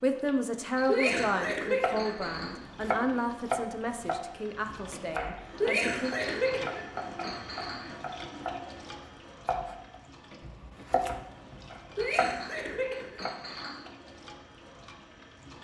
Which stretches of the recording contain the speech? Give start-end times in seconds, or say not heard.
0.0-6.2.